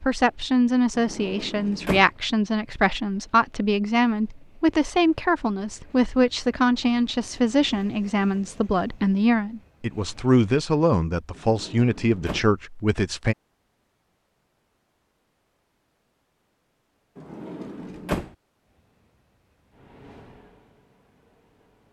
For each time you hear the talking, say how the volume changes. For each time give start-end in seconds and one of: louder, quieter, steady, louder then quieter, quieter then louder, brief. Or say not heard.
0.0-13.3 steady.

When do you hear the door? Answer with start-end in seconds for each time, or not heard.
0.9-2.1, 11.3-12.5, 17.1-18.4.